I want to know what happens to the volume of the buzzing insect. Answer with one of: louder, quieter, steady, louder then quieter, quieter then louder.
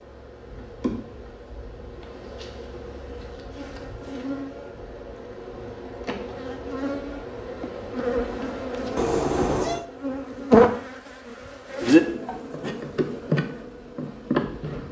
louder.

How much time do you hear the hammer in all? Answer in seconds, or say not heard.
not heard.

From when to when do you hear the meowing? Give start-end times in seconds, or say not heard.
8.9-9.8.